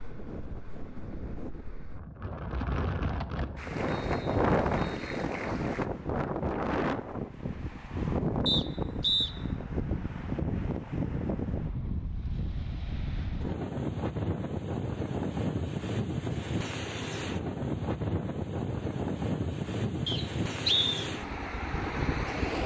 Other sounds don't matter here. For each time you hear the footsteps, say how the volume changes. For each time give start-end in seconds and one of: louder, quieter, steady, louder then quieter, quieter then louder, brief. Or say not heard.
not heard.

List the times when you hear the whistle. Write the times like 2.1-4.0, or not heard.
2.8-5.2, 8.4-9.3, 20.1-20.9.